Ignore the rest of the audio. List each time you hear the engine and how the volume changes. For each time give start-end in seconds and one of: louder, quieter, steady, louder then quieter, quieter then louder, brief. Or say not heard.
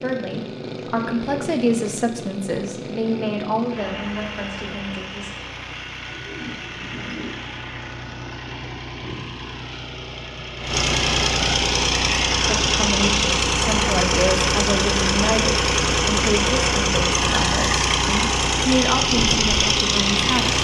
0.0-20.5 louder.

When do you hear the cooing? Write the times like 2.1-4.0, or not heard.
6.1-7.3.